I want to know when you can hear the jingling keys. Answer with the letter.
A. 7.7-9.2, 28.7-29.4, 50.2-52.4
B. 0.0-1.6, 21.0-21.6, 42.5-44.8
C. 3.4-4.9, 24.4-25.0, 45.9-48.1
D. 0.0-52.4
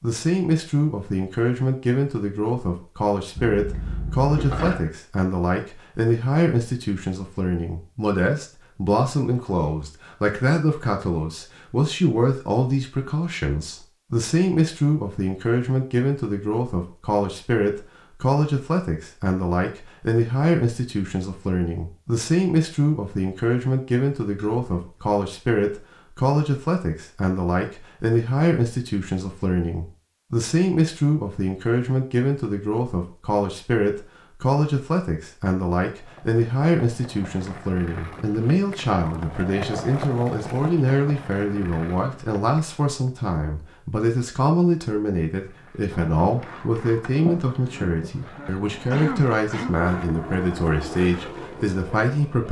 C.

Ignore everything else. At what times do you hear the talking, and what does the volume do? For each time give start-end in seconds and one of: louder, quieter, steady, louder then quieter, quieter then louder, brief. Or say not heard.
0.0-52.4 steady.